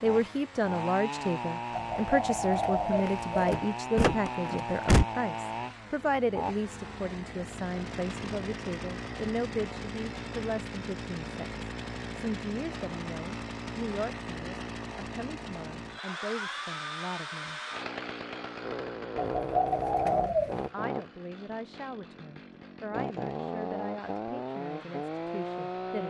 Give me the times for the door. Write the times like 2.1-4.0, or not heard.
3.0-5.0.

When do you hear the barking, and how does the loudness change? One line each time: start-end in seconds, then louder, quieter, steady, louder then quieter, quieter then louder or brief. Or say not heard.
not heard.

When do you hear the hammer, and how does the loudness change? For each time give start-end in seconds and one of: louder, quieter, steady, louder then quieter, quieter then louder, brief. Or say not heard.
not heard.